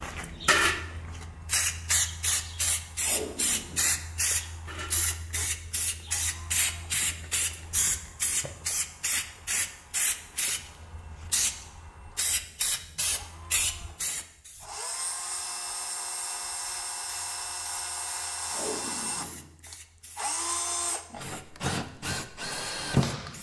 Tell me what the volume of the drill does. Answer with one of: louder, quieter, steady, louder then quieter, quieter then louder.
louder.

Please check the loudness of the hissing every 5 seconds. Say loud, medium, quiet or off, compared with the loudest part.
loud, loud, loud, quiet, quiet.